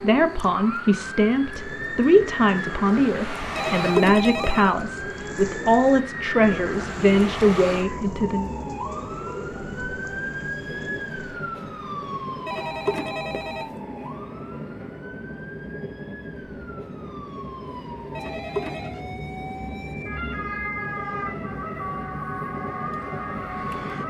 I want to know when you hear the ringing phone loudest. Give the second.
4 s.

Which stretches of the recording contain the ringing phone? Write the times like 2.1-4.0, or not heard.
3.5-4.8, 12.4-13.7, 18.1-18.9.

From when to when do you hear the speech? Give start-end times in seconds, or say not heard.
0.0-8.5.